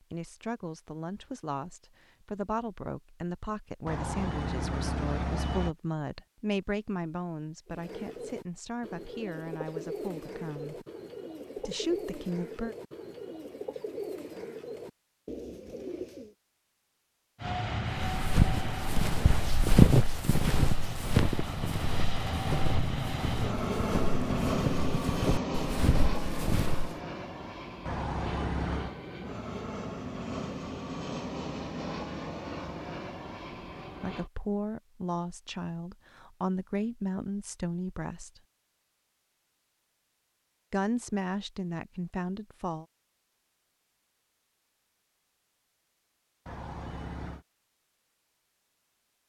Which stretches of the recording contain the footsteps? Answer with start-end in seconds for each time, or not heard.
17.9-26.9.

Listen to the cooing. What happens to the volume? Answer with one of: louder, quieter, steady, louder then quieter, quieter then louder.
steady.